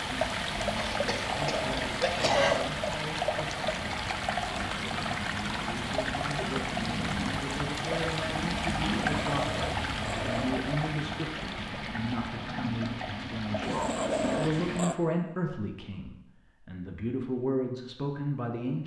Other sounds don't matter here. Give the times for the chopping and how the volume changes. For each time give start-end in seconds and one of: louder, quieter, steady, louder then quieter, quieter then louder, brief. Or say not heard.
not heard.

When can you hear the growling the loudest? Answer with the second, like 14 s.
14 s.